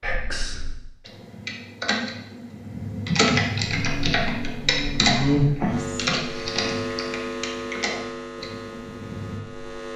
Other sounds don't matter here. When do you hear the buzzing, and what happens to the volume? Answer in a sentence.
You can hear the buzzing from 3.7 to 9.9 s, getting louder then quieter.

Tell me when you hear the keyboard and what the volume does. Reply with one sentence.
The keyboard can be heard from 1.1 to 9.4 s, getting louder then quieter.